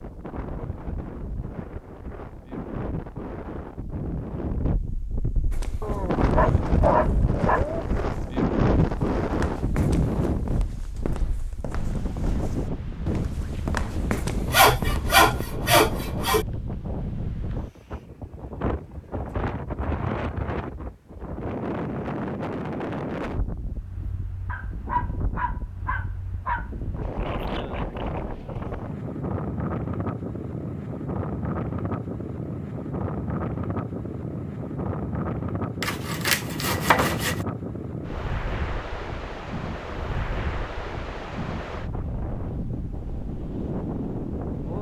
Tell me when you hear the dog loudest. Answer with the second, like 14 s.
7 s.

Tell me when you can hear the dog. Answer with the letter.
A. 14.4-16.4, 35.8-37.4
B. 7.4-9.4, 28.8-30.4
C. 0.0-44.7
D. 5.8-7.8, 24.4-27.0
D.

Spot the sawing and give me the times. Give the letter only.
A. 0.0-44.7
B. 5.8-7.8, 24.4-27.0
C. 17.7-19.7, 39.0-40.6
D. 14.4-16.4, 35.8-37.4
D.